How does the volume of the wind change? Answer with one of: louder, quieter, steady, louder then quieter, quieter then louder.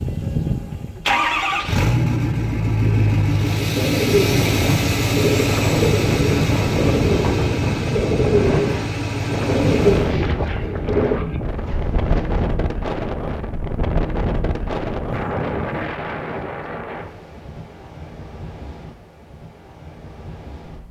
quieter.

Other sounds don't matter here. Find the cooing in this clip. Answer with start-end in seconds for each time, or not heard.
2.8-12.5.